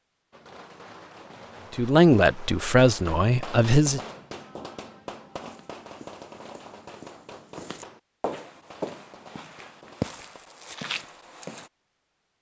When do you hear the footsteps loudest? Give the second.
10 s.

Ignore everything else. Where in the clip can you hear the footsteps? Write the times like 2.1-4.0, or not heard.
5.4-11.7.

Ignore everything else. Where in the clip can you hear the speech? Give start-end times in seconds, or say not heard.
1.7-4.0.